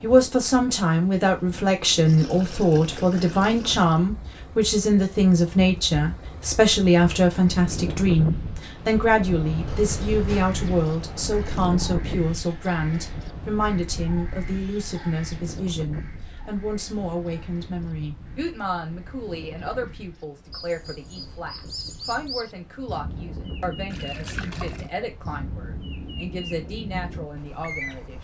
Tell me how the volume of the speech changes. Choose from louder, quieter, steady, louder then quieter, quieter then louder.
quieter.